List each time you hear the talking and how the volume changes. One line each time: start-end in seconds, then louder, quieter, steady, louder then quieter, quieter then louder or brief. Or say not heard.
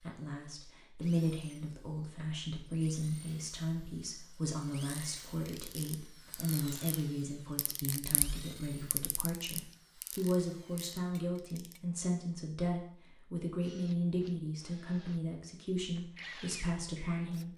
0.0-17.5 steady.